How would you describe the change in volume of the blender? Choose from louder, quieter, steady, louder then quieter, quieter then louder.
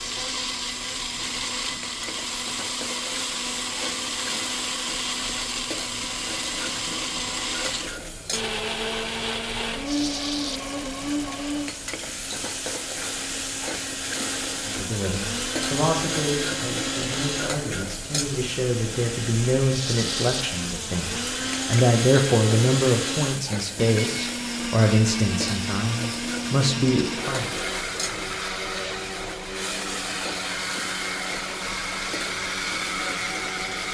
steady.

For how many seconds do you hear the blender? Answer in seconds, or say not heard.
34 s.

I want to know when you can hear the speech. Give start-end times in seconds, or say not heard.
14.7-27.5.